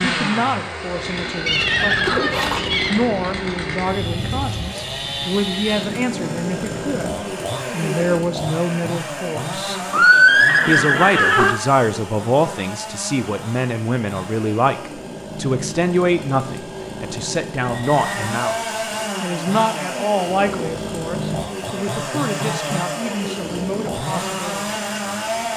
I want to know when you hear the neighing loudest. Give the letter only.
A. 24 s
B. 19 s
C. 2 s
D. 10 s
D.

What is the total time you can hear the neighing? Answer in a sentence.
You can hear the neighing for 4 seconds altogether.